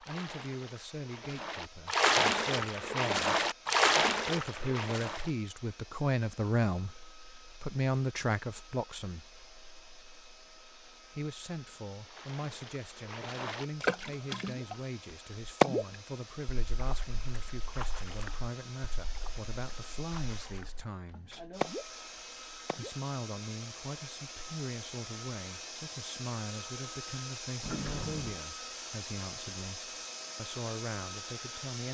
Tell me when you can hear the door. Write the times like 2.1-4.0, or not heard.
27.6-28.4.